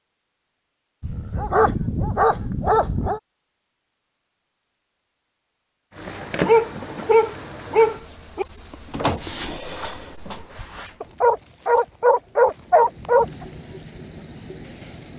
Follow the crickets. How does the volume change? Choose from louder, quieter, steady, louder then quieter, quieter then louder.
quieter then louder.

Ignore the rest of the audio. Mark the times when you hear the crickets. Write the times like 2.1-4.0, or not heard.
5.9-15.1.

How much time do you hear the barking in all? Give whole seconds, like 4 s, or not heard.
7 s.